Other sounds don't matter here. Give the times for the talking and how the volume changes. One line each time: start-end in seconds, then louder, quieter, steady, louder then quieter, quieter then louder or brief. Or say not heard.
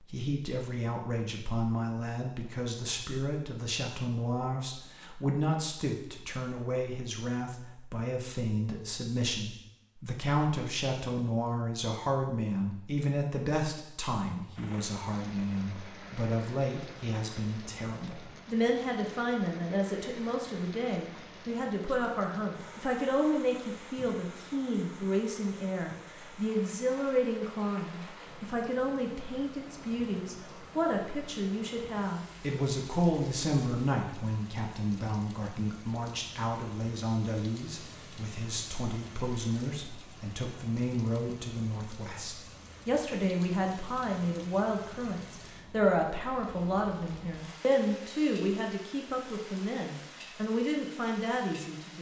0.0-51.9 steady.